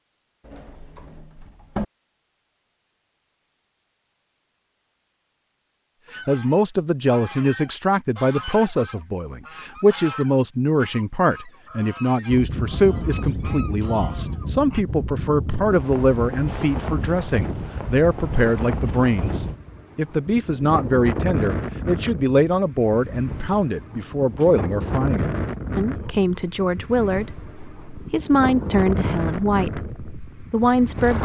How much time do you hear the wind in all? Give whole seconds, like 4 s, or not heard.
19 s.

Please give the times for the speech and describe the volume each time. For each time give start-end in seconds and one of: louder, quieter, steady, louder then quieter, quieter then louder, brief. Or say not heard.
6.2-31.2 steady.